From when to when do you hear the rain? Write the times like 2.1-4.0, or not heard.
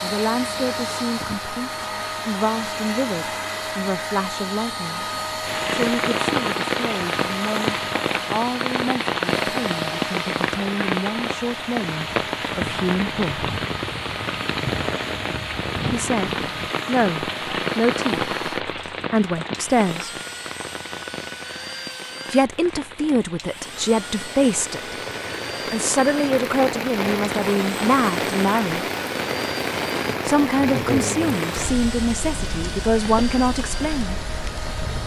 5.5-35.0.